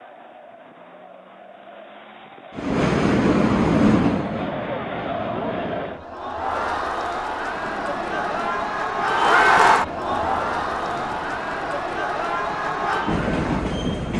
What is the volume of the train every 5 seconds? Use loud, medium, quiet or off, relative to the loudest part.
loud, quiet, medium.